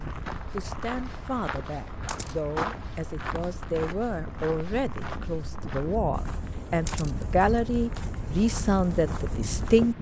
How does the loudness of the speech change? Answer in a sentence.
The volume of the speech goes up.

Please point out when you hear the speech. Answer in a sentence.
The speech can be heard from 0.0 to 9.9 s.